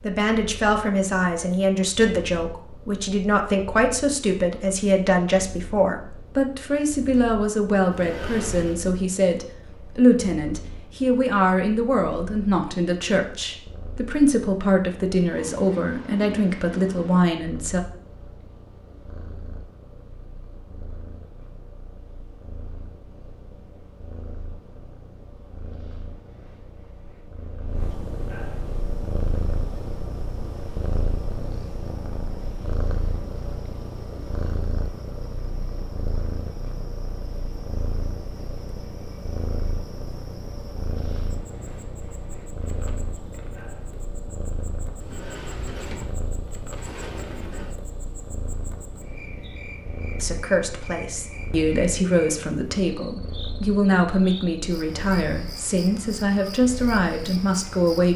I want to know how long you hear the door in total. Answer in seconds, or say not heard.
4 s.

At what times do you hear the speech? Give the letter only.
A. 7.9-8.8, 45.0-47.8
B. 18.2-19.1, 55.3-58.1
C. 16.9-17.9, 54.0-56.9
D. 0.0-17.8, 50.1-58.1
D.